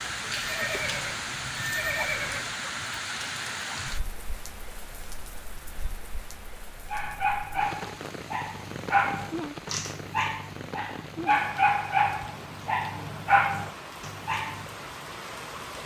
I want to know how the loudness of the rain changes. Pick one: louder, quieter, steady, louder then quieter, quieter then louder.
quieter.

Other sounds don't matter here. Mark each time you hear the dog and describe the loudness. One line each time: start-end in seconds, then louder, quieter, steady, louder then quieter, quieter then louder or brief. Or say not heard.
6.9-14.8 louder.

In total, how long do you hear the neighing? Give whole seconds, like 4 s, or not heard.
2 s.